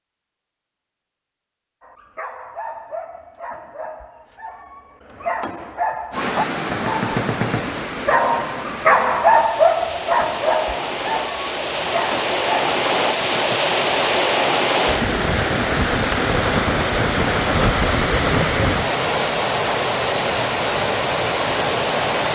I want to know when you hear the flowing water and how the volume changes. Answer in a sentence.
You can hear the flowing water from 6.1 to 22.2 s, getting louder.